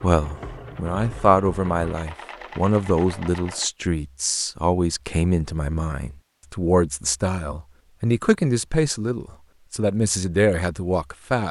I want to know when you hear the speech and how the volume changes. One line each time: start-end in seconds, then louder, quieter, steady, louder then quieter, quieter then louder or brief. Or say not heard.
0.0-11.4 steady.